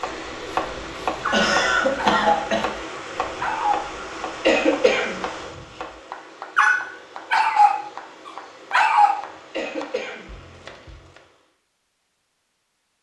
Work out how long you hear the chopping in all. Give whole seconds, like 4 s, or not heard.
11 s.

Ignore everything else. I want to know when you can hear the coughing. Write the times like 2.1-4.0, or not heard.
1.3-2.6, 4.4-5.6, 9.5-10.7.